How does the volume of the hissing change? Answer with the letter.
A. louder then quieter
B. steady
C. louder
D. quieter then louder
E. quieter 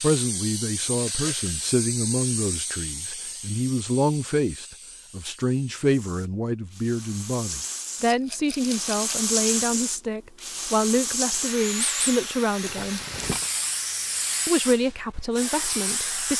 D.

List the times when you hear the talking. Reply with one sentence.
You can hear the talking from 0.0 to 13.0 s and from 14.4 to 16.3 s.